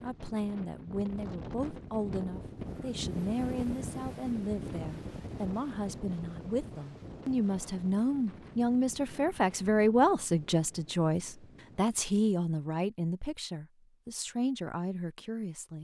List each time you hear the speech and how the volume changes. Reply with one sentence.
The speech can be heard from 0.0 to 15.7 s, getting louder then quieter.